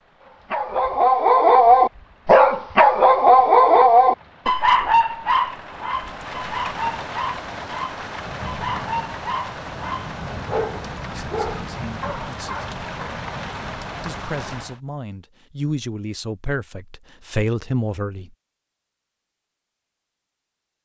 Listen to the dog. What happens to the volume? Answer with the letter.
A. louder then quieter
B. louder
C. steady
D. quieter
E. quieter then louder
D.